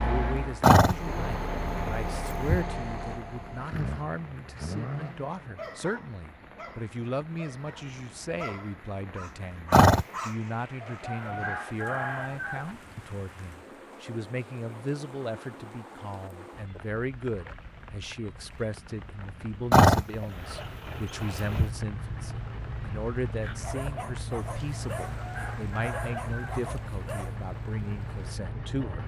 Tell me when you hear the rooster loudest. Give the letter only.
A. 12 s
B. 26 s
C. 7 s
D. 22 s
A.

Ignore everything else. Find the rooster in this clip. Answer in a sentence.
The rooster can be heard from 10.8 to 12.8 s and from 24.9 to 26.6 s.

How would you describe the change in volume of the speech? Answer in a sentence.
The loudness of the speech stays about the same.